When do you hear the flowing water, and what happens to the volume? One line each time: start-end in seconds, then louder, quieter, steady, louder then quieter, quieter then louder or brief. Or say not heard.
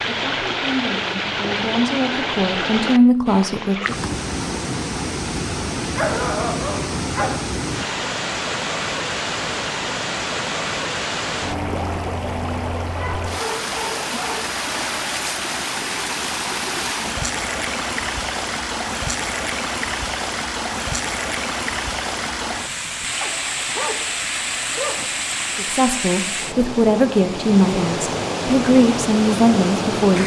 0.0-30.2 steady.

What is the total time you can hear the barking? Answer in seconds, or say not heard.
5 s.